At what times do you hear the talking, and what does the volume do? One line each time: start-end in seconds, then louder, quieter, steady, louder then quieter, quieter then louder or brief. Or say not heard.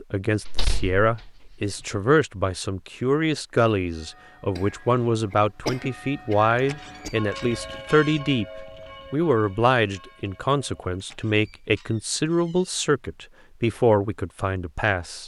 0.0-15.2 steady.